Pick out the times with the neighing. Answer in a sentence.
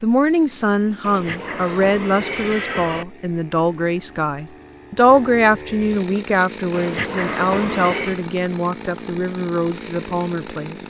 The neighing can be heard from 1.0 to 3.0 s and from 6.7 to 8.2 s.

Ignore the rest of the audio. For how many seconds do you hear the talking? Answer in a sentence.
You can hear the talking for 11 seconds altogether.